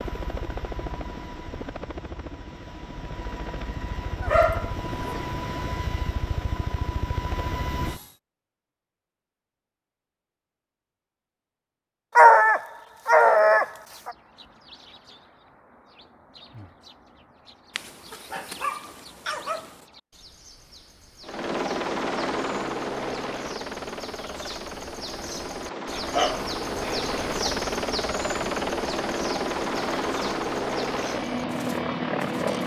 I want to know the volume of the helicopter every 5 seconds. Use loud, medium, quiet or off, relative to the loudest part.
medium, medium, off, off, loud, loud, loud.